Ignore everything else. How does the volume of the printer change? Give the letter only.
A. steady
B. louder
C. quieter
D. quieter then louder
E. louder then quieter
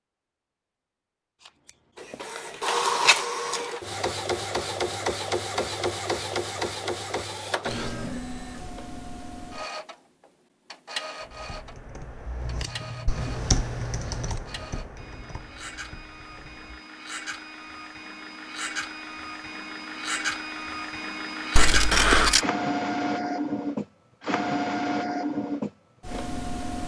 D.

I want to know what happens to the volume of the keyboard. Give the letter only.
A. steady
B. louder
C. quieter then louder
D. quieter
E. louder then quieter
E.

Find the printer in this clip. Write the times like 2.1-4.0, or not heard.
1.9-26.8.